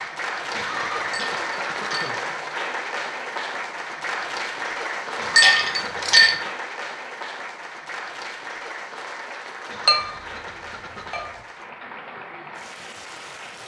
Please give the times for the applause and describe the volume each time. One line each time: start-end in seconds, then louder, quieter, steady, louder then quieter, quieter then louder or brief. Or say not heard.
0.0-13.6 quieter.